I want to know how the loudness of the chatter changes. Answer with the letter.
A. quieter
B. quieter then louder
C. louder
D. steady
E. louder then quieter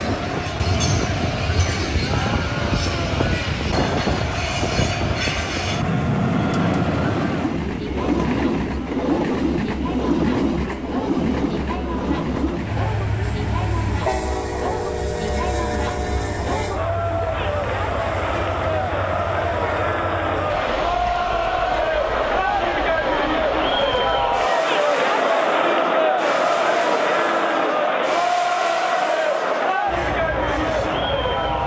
C.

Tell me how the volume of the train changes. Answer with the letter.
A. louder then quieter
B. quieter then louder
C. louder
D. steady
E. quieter
E.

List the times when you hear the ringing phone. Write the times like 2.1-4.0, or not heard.
not heard.